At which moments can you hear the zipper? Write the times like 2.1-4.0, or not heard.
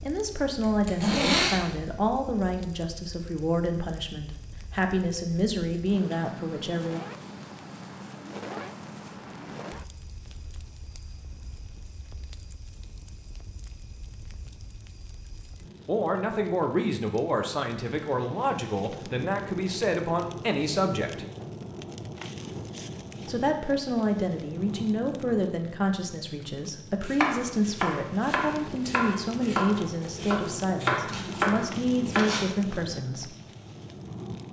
0.6-1.6, 31.1-32.5.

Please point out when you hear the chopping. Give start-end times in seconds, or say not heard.
27.0-32.5.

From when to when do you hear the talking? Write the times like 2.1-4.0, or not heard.
0.0-7.0, 15.8-21.2, 23.2-33.4.